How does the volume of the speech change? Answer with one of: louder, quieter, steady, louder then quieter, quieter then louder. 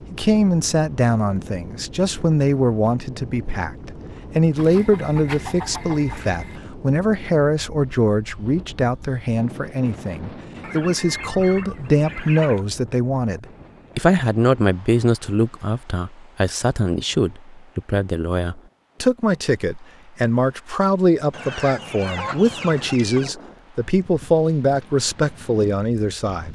steady.